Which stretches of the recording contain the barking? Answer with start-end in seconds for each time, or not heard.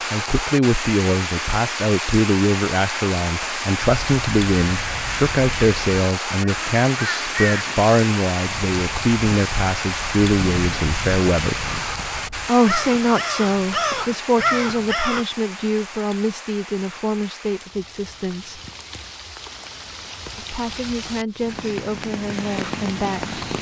not heard.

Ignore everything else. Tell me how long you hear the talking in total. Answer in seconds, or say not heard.
21 s.